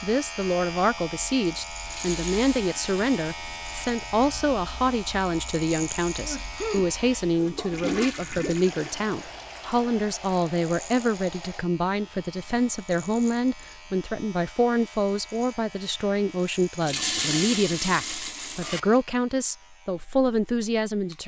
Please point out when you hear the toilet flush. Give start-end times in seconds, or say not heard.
1.9-3.9, 7.3-9.8, 16.8-18.8.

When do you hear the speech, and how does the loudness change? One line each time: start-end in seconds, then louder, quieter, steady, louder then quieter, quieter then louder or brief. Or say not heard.
0.0-21.2 steady.